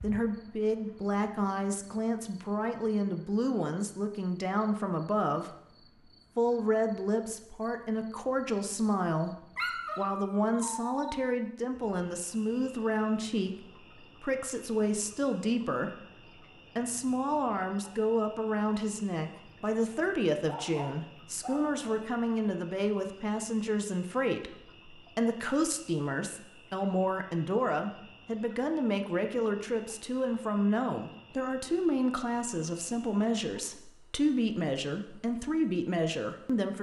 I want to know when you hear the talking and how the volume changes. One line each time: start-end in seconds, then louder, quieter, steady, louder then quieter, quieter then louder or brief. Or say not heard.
0.0-5.5 steady
6.3-36.7 steady.